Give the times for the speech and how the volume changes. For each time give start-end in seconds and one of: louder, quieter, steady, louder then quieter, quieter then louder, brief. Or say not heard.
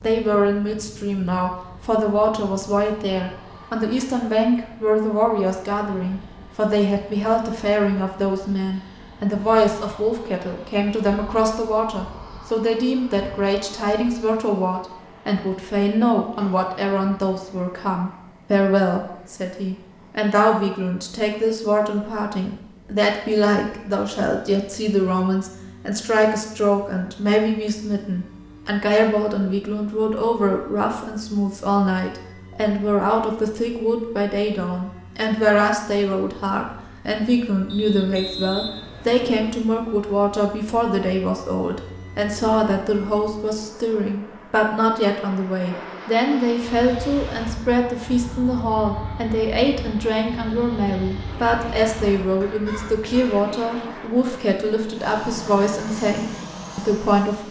0.0-57.4 steady.